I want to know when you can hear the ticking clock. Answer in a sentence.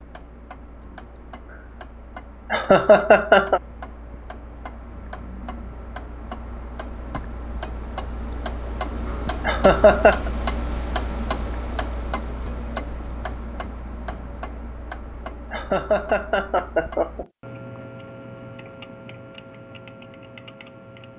The ticking clock can be heard from 0.0 to 21.1 s.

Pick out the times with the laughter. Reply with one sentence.
The laughter can be heard from 2.5 to 3.6 s, from 9.4 to 10.3 s and from 15.5 to 17.2 s.